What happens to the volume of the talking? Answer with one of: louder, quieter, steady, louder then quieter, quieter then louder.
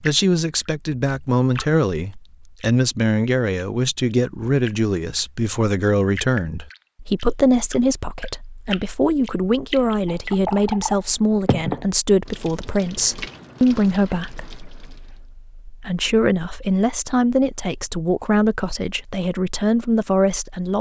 steady.